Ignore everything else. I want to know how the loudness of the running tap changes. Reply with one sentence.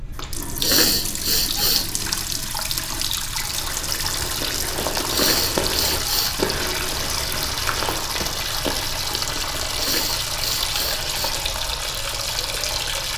The loudness of the running tap stays about the same.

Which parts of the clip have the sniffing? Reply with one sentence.
You can hear the sniffing from 0.6 to 1.9 s, from 5.0 to 6.4 s and from 9.8 to 11.2 s.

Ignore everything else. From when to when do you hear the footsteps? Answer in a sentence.
The footsteps can be heard from 3.4 to 11.4 s.